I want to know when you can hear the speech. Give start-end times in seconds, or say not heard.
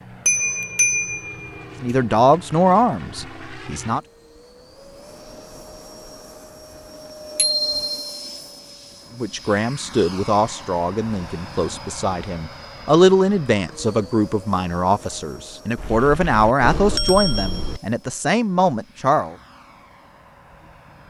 1.8-4.0, 9.2-19.4.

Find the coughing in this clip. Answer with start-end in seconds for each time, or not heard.
not heard.